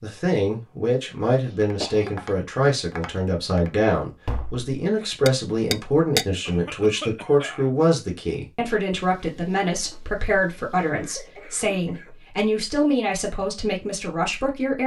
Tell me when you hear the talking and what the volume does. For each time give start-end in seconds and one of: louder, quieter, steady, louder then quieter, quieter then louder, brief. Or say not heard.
0.0-14.8 steady.